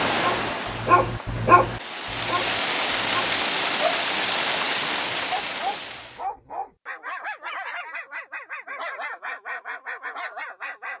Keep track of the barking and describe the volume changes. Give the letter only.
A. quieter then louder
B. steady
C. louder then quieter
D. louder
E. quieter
E.